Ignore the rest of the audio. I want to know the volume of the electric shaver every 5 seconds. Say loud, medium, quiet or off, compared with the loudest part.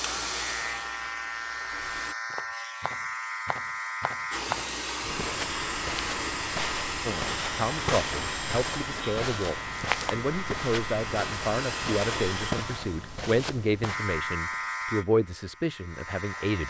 loud, loud, loud, medium.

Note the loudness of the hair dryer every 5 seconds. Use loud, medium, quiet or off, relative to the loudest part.
loud, loud, loud, off.